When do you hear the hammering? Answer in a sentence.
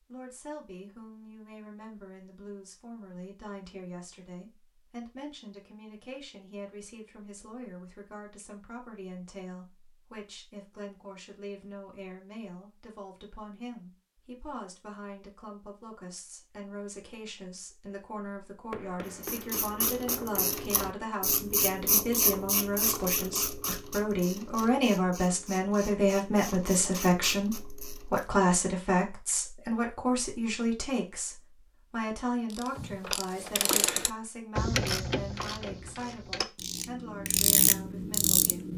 The hammering can be heard from 18.7 to 20.6 s.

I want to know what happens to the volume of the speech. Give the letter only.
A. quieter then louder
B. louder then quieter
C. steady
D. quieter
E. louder
B.